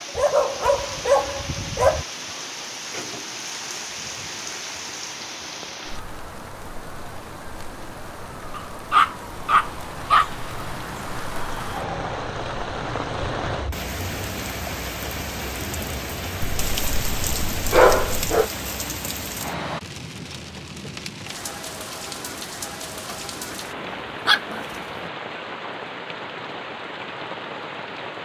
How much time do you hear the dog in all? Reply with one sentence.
The dog can be heard for 8 seconds in total.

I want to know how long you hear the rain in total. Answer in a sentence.
The rain can be heard for 28 seconds in total.